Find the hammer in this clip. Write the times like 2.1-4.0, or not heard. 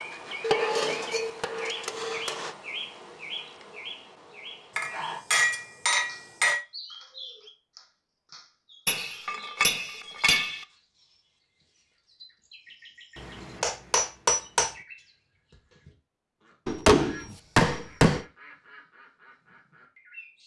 0.4-2.5, 4.8-6.6, 8.8-10.7, 13.2-14.8, 16.6-18.2.